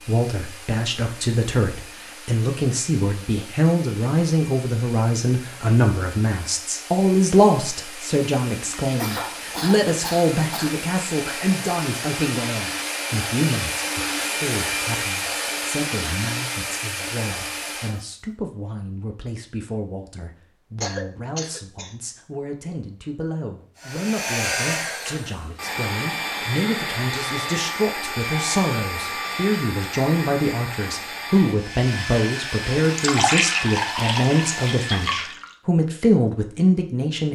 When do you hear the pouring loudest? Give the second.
33 s.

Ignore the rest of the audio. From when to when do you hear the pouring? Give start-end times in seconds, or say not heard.
33.0-35.5.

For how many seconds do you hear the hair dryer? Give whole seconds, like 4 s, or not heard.
30 s.